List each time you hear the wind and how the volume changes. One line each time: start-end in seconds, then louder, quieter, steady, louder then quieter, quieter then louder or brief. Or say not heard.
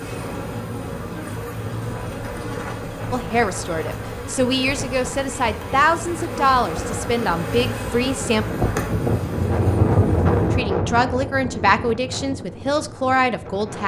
0.0-13.8 louder then quieter.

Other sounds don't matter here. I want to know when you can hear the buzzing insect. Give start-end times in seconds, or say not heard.
0.0-10.6.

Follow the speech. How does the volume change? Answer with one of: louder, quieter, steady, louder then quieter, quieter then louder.
steady.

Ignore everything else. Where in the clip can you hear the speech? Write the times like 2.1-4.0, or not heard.
3.1-8.4, 10.5-13.8.